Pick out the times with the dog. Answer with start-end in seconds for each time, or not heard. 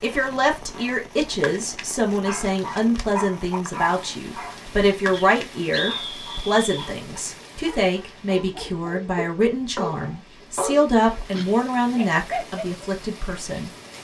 0.7-12.8.